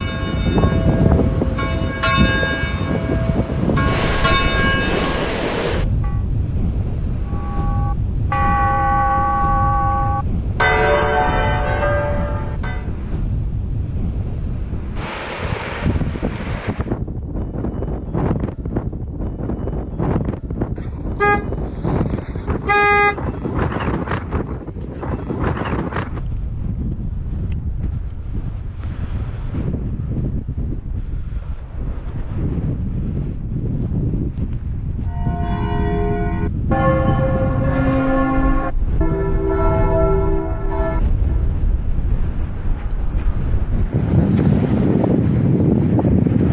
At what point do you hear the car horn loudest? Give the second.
23 s.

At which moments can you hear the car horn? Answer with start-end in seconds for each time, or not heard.
20.8-23.1.